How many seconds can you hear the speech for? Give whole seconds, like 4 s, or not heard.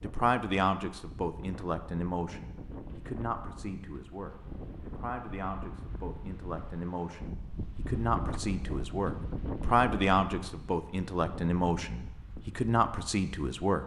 14 s.